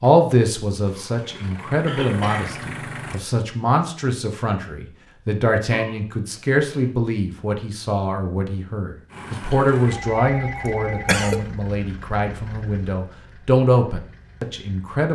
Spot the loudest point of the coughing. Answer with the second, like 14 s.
11 s.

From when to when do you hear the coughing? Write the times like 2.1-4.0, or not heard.
1.9-2.6, 5.7-6.8, 10.7-11.4.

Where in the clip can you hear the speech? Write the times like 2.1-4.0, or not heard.
0.0-15.1.